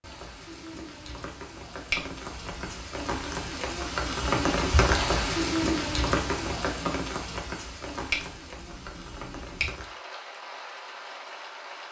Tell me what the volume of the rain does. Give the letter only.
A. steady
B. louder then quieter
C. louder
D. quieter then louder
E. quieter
B.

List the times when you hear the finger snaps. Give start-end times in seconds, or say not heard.
1.9-2.9, 8.1-9.7.